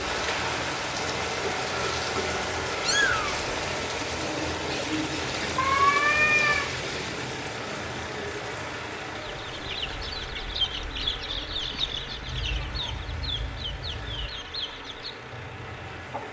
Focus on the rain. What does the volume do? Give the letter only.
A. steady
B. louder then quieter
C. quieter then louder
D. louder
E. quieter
E.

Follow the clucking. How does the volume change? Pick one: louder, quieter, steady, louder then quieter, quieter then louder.
quieter.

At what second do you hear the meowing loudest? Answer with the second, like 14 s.
6 s.